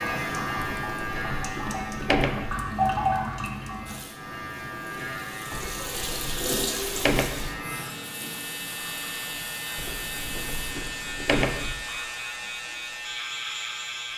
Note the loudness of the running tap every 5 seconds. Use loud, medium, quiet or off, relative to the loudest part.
loud, medium, quiet.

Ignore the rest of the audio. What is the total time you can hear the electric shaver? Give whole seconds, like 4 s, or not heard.
14 s.